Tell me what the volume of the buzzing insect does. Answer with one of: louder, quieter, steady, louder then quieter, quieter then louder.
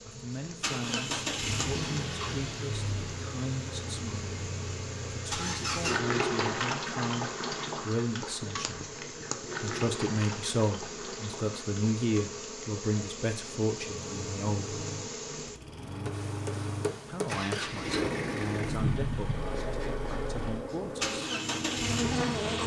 louder.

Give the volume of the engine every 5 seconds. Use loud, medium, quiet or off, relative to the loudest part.
loud, loud, medium, loud, loud.